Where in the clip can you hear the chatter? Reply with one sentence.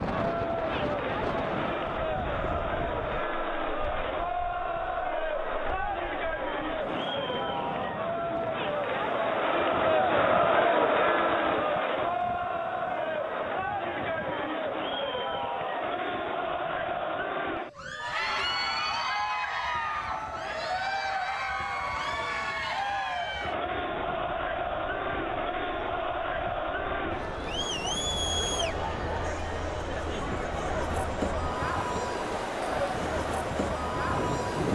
The chatter can be heard from 0.0 to 34.7 s.